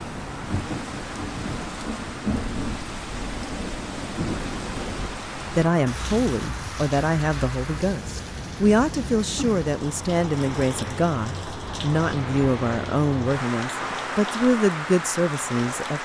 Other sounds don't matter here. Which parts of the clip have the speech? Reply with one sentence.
The speech can be heard from 5.5 to 16.0 s.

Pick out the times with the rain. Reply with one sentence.
You can hear the rain from 0.0 to 16.0 s.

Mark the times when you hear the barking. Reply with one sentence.
You can't hear the barking here.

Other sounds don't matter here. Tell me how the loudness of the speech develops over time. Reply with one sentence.
The volume of the speech stays about the same.